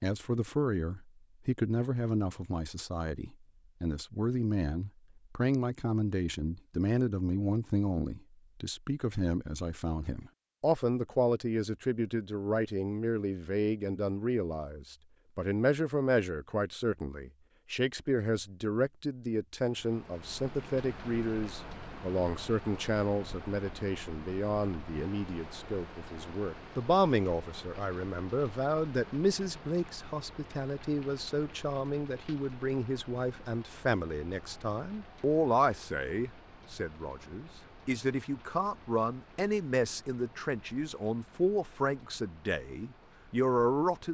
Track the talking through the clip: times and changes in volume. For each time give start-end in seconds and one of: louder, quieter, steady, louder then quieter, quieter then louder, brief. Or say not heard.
0.0-44.0 steady.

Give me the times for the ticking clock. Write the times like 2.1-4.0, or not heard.
not heard.